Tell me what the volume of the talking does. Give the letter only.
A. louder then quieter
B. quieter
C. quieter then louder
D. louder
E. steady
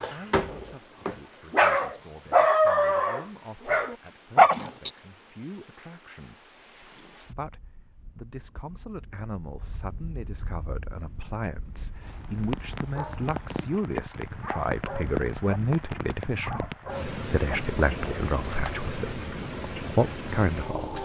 D.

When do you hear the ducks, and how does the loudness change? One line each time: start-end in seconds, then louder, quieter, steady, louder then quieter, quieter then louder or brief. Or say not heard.
not heard.